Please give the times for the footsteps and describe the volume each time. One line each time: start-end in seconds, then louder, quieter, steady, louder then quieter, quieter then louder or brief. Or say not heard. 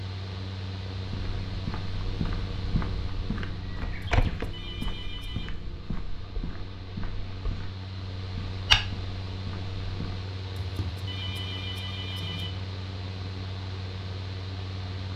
1.1-10.2 quieter then louder.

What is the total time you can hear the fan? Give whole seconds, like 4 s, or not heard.
15 s.